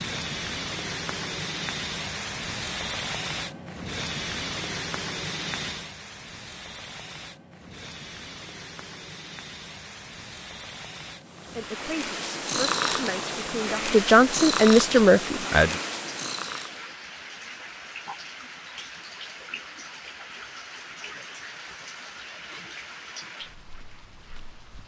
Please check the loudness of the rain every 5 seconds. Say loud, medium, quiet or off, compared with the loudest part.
loud, medium, medium, medium, medium.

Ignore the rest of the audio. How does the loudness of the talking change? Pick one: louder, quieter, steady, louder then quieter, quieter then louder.
louder.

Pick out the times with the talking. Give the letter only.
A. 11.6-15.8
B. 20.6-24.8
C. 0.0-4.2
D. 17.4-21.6
A.